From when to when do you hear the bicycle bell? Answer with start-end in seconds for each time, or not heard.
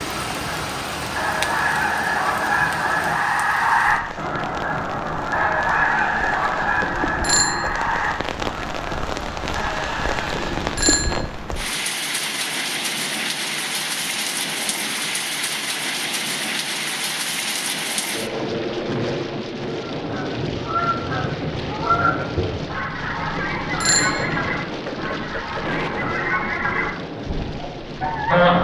6.8-7.8, 10.3-11.3, 23.4-24.6.